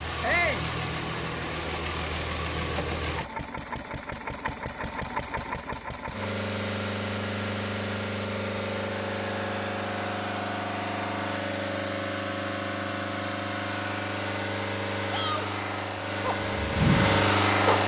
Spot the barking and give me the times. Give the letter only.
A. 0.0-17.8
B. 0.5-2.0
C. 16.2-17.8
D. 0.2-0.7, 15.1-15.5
C.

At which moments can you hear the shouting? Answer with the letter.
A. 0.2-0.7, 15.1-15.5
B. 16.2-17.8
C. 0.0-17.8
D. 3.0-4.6
A.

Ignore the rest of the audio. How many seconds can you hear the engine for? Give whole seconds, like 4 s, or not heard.
18 s.